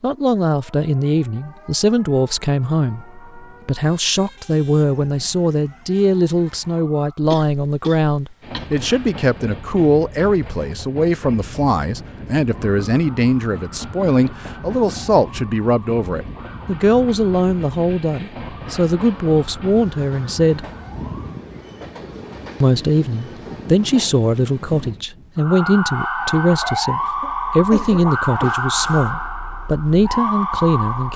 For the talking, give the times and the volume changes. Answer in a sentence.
The talking can be heard from 0.0 to 20.6 s, at a steady volume; and from 22.6 to 31.1 s, at a steady volume.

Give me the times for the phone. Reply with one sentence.
The phone can't be heard in this clip.